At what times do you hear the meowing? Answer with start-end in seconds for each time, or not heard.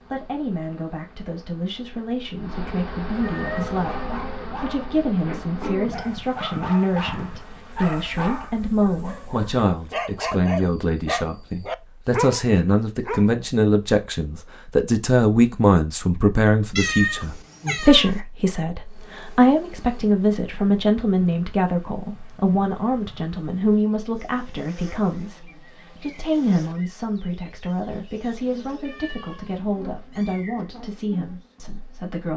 3.2-3.9, 16.8-18.1, 28.8-30.8.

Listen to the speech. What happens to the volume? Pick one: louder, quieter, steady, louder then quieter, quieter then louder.
louder then quieter.